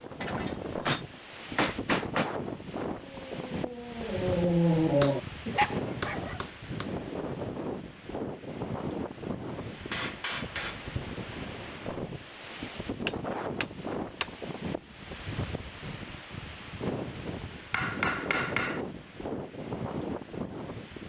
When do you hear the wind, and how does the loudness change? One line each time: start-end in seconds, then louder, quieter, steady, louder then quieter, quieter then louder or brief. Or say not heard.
0.0-21.0 steady.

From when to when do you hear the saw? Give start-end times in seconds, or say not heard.
not heard.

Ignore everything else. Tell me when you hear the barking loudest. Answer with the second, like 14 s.
5 s.